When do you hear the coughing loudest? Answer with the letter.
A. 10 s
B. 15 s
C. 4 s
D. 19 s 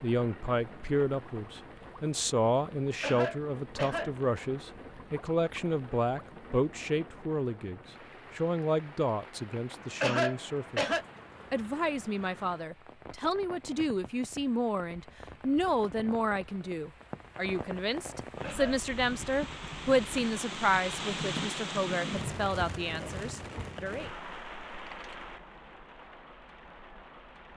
A.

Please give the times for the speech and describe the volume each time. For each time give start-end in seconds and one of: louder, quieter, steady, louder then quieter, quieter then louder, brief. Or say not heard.
0.0-24.1 steady.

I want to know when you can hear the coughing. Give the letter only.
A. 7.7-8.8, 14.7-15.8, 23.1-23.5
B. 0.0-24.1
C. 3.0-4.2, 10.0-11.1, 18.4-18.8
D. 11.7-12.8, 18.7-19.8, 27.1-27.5
C.